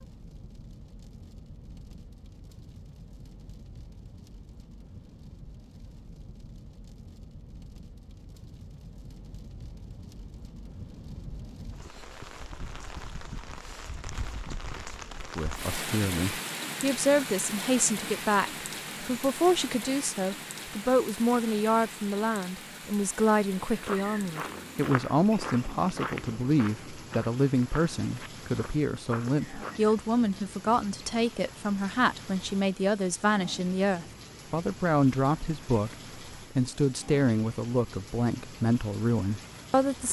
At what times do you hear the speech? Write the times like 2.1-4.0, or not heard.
15.3-40.0.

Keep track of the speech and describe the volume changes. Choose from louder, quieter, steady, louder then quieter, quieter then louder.
steady.